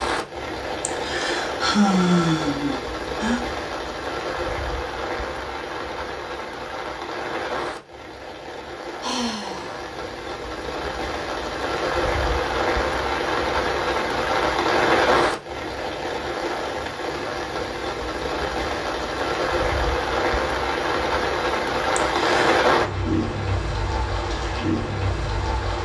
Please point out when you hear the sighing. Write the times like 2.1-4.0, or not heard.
0.8-3.4, 9.0-9.8, 21.9-22.6.